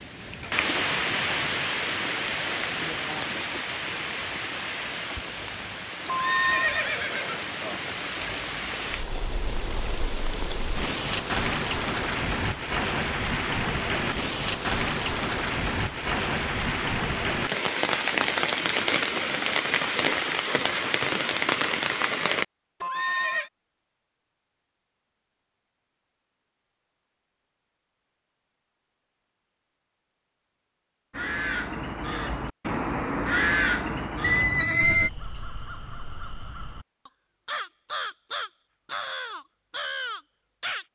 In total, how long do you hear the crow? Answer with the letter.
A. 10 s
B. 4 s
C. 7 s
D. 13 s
A.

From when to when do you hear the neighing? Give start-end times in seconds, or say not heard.
6.0-7.5, 22.8-23.5, 34.2-35.1.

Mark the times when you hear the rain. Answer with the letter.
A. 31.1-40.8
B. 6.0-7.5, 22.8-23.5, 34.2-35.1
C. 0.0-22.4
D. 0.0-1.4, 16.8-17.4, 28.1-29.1
C.